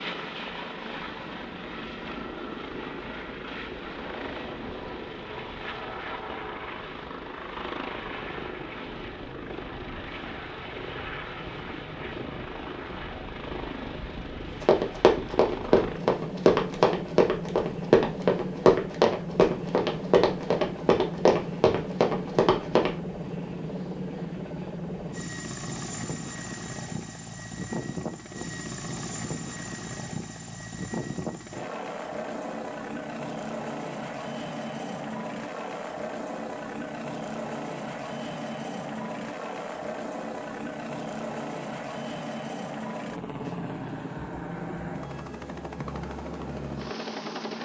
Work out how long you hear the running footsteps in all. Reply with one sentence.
You can hear the running footsteps for 8 seconds altogether.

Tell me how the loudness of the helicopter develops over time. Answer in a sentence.
The volume of the helicopter stays about the same.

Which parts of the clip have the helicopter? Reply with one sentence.
You can hear the helicopter from 0.0 to 47.5 s.